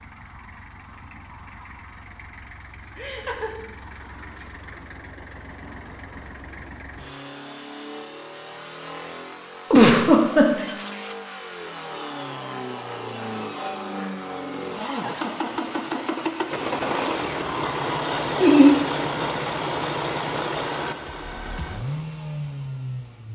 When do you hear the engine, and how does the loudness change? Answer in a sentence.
You can hear the engine from 0.0 to 23.3 s, getting louder.